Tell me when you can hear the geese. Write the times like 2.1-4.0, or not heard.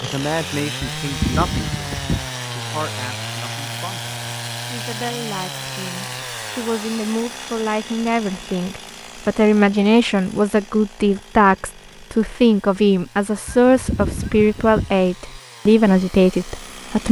1.0-2.3, 13.4-14.9.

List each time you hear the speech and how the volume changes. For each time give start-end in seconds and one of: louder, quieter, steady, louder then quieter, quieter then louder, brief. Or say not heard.
0.0-17.0 louder.